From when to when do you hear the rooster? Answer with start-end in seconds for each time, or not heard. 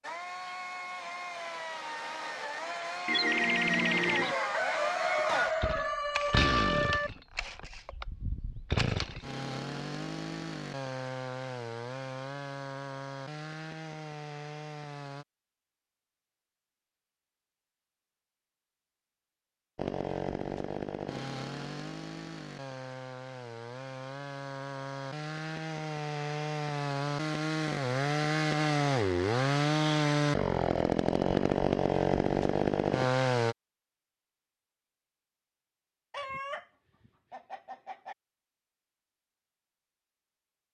3.0-7.1, 36.1-38.1.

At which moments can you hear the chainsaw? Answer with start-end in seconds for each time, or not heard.
0.0-15.2, 19.8-33.5.